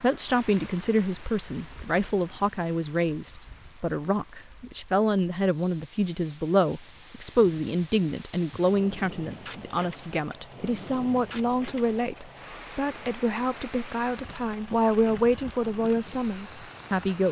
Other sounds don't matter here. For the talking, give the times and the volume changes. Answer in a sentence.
The talking can be heard from 0.0 to 17.2 s, at a steady volume.